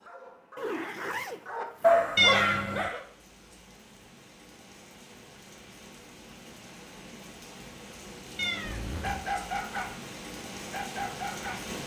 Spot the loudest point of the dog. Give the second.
2 s.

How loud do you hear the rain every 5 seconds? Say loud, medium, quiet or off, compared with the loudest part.
quiet, medium, loud.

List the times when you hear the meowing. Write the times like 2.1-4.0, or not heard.
2.1-2.9, 8.3-9.2.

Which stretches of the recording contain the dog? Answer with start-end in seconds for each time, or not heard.
0.0-3.0, 9.0-9.9, 10.7-11.6.